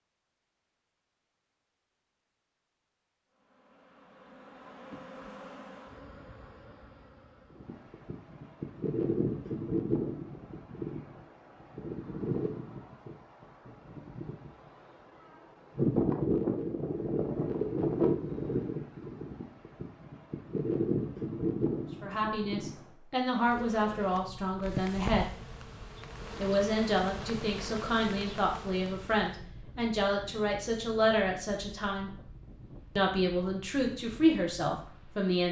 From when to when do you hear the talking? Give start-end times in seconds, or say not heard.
22.0-25.3, 26.4-32.1, 33.0-35.4.